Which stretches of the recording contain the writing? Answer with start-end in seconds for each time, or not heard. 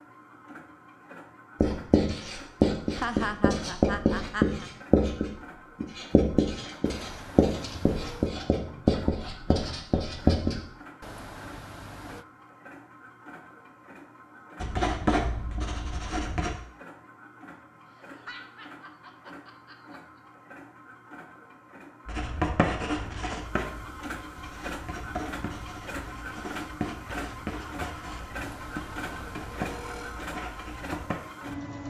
1.6-10.7, 14.6-16.6, 22.1-31.2.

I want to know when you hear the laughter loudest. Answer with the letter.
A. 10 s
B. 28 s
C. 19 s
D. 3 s
D.